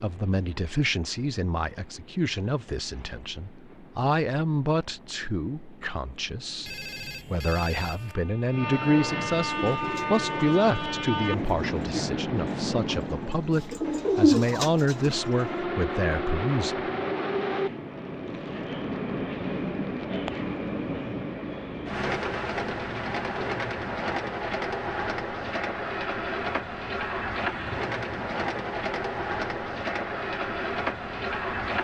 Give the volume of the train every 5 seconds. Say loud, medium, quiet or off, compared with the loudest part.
quiet, medium, loud, loud, loud, loud, loud.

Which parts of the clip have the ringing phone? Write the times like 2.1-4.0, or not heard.
6.6-8.2.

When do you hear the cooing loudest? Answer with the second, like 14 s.
14 s.